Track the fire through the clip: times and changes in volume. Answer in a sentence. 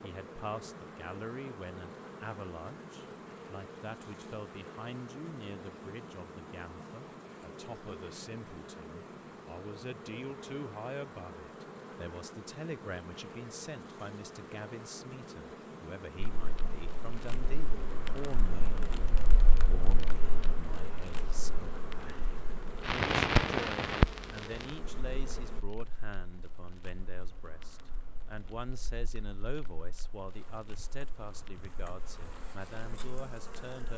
You can hear the fire from 16.4 to 33.7 s, getting louder then quieter.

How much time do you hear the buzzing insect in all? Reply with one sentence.
You can hear the buzzing insect for 29 seconds altogether.